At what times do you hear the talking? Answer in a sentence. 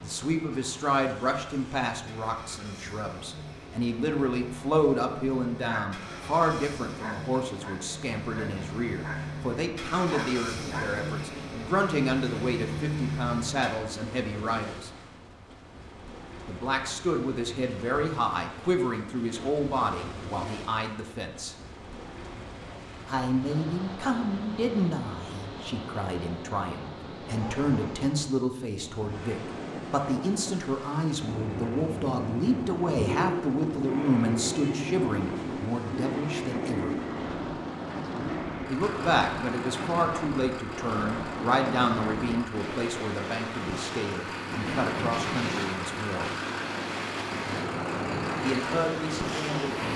You can hear the talking from 0.0 to 14.9 s, from 16.4 to 21.6 s, from 23.1 to 37.0 s, from 38.6 to 46.3 s and from 48.4 to 49.9 s.